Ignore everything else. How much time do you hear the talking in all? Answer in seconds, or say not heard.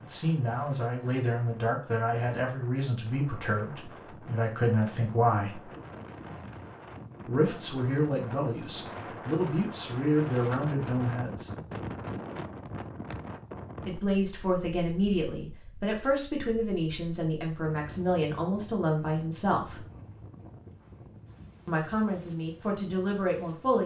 18 s.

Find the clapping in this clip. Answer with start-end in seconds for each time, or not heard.
not heard.